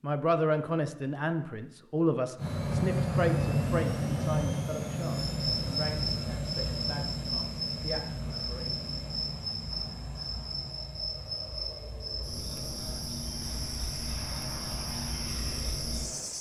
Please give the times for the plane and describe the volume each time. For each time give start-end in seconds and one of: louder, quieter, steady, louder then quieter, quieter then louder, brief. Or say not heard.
2.4-16.3 quieter.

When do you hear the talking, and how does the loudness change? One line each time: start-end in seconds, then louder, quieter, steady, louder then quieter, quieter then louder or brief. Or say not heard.
0.0-8.7 quieter.